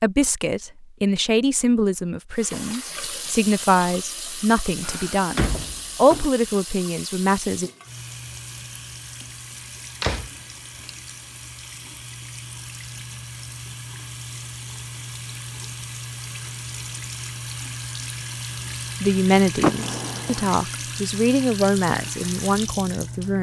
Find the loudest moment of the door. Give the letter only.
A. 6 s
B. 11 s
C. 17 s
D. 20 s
D.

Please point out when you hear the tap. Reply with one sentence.
The tap can be heard from 2.3 to 23.3 s.